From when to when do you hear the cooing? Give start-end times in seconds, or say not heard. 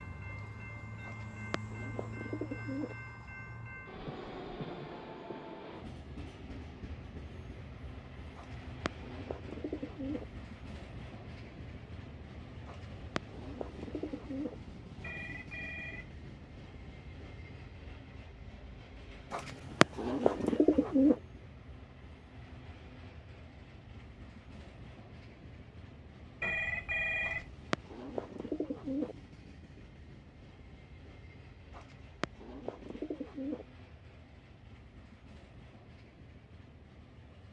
1.1-3.0, 8.3-10.2, 12.7-14.6, 19.3-21.1, 27.2-29.1, 31.7-33.6.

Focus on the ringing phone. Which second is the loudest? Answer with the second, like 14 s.
27 s.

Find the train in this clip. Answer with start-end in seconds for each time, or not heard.
0.0-37.4.